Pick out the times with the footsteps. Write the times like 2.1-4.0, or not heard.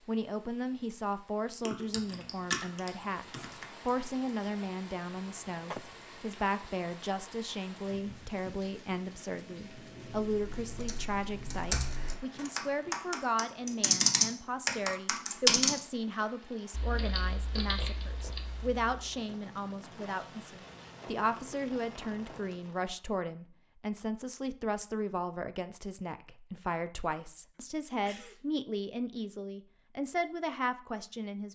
not heard.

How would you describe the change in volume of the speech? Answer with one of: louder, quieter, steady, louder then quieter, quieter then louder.
steady.